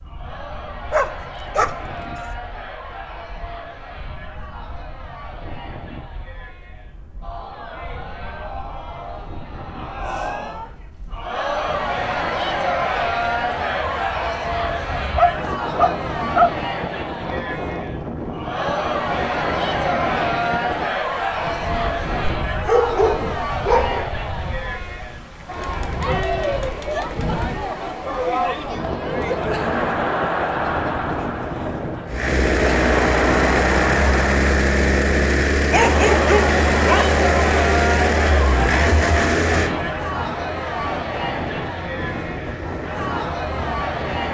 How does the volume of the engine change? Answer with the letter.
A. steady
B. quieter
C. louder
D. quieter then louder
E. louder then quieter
B.